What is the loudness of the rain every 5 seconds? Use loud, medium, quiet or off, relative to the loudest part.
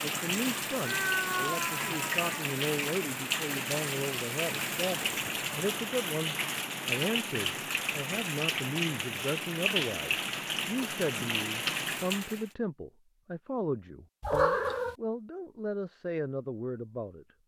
loud, loud, loud, off.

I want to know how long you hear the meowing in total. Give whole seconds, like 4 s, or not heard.
2 s.